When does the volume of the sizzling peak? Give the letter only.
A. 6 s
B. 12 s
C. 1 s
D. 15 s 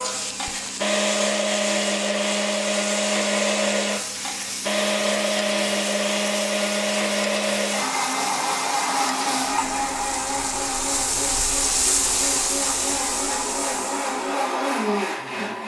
B.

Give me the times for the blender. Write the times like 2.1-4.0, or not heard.
0.0-15.6.